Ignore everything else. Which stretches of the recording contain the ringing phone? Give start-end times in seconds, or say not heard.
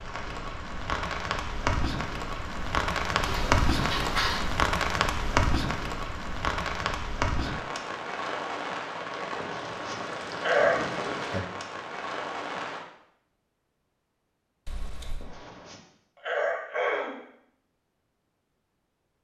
14.7-15.3.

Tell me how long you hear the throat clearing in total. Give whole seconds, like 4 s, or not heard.
5 s.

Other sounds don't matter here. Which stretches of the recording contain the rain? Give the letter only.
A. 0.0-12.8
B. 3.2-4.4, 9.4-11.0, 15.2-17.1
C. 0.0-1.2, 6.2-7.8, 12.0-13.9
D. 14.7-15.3
A.